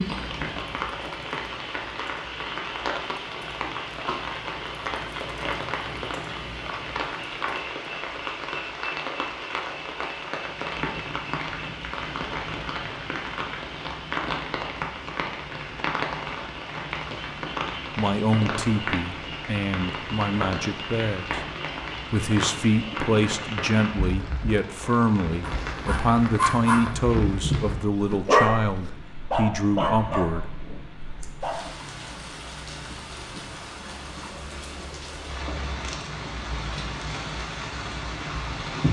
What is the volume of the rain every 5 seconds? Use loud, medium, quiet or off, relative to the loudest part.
loud, loud, loud, loud, loud, loud, medium, loud.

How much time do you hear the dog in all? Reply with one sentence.
You can hear the dog for 5 seconds altogether.